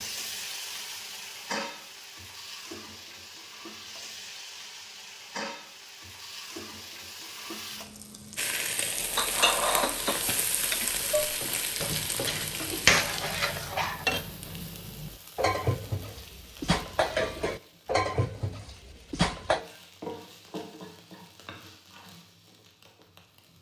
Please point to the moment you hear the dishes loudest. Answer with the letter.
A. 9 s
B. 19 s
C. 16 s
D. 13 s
D.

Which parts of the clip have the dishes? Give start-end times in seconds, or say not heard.
9.2-19.6.